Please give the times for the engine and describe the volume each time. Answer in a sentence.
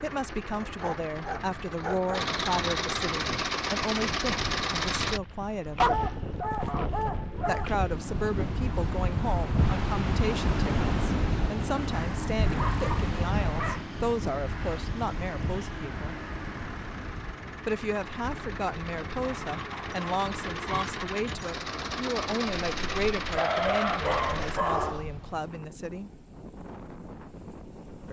You can hear the engine from 0.0 to 5.2 s, getting louder; and from 11.9 to 24.6 s, getting louder.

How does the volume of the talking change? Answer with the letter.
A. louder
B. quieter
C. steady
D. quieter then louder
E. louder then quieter
C.